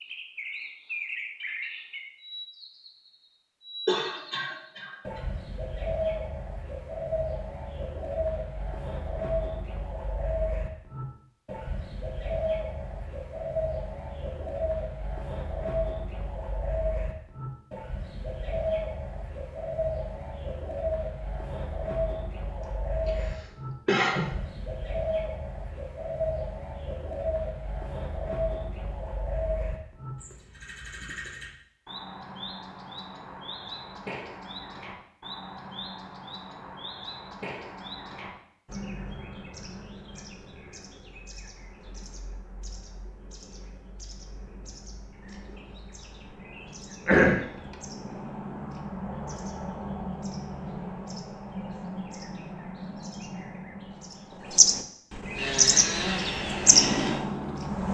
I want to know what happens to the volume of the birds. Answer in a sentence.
The loudness of the birds goes down, then up.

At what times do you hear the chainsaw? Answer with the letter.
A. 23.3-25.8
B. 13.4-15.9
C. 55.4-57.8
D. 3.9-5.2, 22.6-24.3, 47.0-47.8
C.